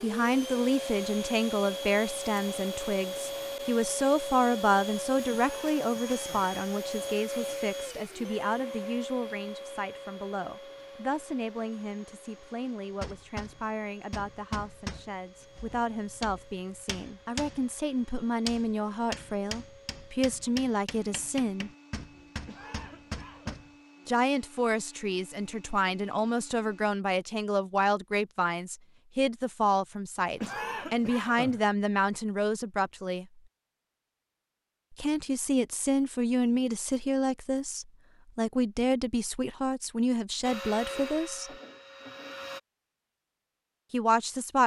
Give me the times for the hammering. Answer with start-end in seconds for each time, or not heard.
13.0-23.7.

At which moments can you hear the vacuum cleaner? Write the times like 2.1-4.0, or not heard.
0.0-26.9, 40.4-42.6.